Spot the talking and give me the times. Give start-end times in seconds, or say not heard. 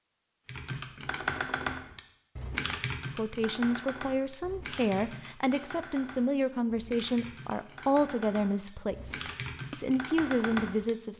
3.1-11.1.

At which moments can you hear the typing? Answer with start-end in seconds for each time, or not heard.
0.5-10.9.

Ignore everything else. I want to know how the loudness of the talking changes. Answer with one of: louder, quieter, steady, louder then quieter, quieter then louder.
steady.